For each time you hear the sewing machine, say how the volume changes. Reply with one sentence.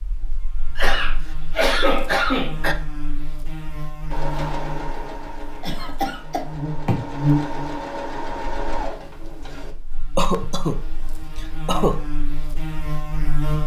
The sewing machine can be heard from 4.1 to 9.8 s, getting quieter then louder.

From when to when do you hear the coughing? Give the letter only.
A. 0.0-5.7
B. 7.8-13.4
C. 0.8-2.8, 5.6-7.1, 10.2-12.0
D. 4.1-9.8
C.